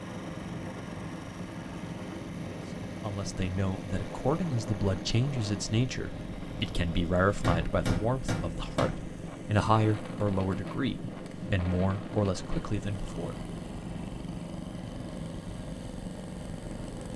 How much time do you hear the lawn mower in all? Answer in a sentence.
You can hear the lawn mower for 17 seconds altogether.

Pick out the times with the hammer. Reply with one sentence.
You can hear the hammer from 7.4 to 9.1 s.